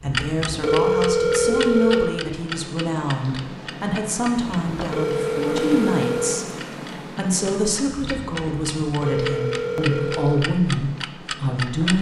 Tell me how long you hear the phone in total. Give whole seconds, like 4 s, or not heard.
5 s.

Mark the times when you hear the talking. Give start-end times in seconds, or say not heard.
0.0-6.5, 7.2-11.9.